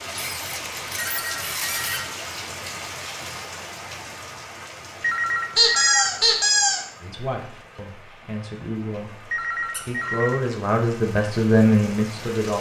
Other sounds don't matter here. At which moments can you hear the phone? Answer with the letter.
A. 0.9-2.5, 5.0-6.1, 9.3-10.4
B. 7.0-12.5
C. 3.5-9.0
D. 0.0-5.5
A.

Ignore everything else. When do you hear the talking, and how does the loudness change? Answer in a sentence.
You can hear the talking from 7.0 to 12.5 s, getting louder.